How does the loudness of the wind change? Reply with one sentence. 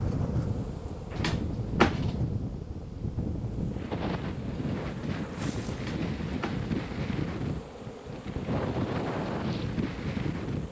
The volume of the wind stays about the same.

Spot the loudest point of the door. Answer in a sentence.
The volume of the door peaks at 2 seconds.